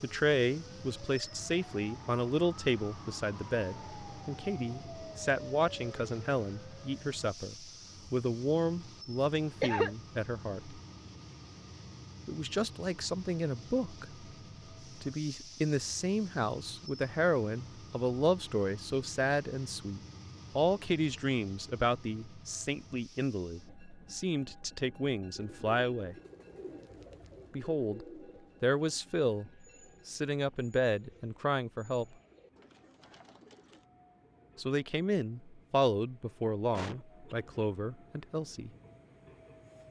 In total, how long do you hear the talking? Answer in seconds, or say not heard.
33 s.